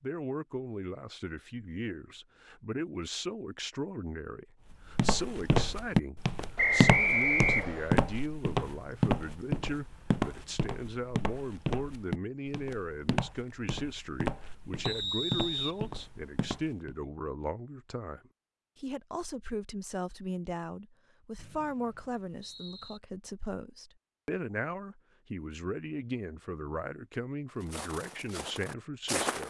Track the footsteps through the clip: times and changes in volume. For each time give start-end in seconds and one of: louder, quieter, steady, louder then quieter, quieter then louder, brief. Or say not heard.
5.0-16.9 quieter
27.6-29.4 brief.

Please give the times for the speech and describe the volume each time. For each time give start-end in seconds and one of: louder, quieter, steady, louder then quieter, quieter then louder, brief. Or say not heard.
0.0-29.4 steady.